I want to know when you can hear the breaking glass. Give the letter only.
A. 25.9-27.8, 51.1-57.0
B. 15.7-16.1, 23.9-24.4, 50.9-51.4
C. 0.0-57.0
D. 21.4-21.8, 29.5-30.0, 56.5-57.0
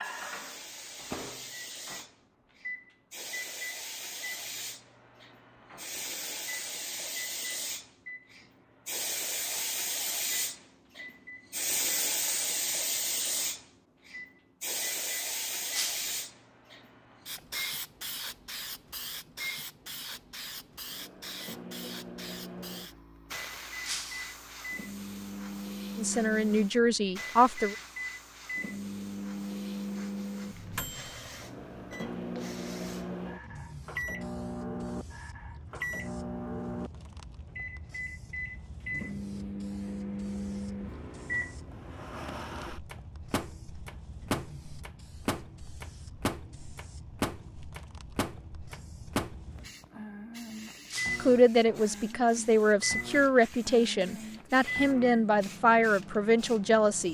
B.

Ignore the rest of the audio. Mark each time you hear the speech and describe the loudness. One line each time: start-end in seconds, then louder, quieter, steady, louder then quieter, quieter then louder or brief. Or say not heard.
25.9-27.8 brief
51.1-57.0 steady.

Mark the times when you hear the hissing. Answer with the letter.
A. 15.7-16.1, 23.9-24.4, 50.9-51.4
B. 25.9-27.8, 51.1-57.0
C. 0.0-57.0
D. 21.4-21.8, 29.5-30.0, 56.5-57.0
C.